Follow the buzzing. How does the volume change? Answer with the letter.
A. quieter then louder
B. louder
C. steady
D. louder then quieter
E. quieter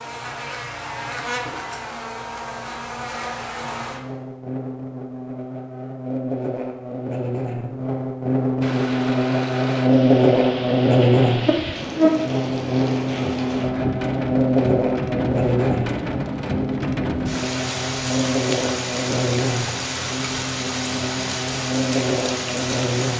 D.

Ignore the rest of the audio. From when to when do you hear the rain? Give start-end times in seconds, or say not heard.
8.6-23.1.